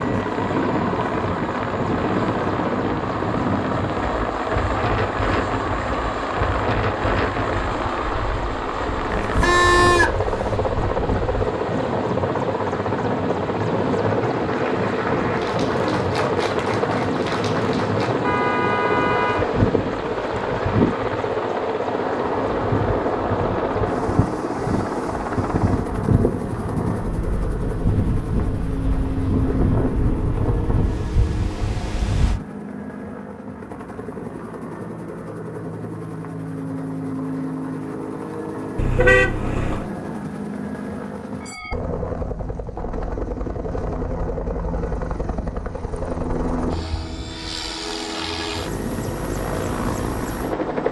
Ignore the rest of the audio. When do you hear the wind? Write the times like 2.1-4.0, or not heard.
0.0-32.4.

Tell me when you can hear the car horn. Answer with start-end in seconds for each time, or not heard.
9.1-10.6, 18.2-19.5, 38.8-39.9.